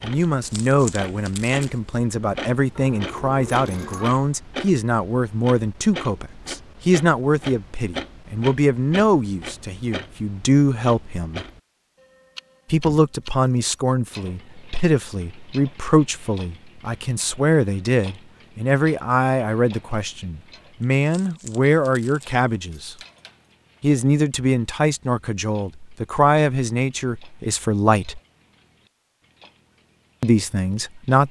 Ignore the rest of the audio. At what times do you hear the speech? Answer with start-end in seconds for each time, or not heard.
0.0-11.4, 12.7-22.9, 23.8-28.2, 30.2-31.2.